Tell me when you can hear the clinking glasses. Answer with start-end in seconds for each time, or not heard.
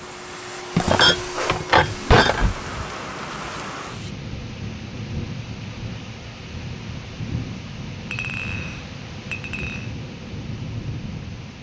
0.8-2.6, 8.1-9.9.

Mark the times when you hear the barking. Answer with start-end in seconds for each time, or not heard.
not heard.